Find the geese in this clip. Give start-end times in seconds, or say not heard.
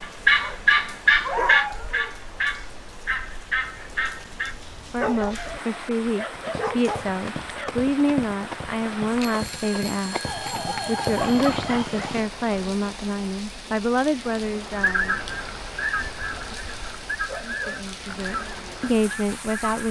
0.0-4.5, 14.7-19.8.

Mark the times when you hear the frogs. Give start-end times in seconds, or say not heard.
not heard.